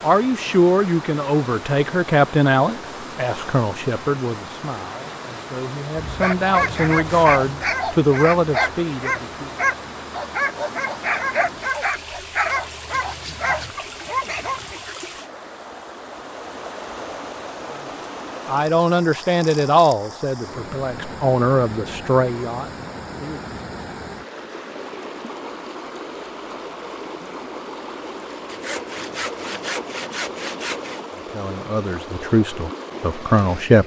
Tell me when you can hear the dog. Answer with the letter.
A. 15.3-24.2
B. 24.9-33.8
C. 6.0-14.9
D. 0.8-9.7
C.